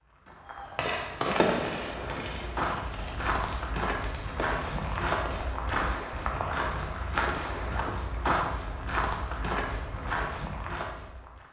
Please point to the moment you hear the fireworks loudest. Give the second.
1 s.